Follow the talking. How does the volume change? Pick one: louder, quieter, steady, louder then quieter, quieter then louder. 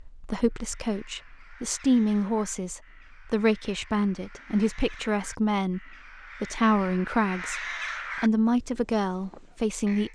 steady.